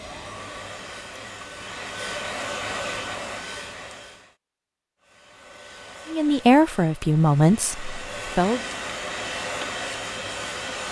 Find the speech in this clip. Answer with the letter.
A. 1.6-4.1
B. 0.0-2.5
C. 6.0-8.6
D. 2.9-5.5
C.